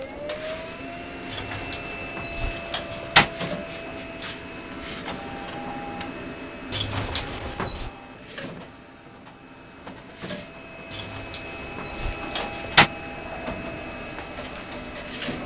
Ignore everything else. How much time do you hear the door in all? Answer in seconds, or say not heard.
5 s.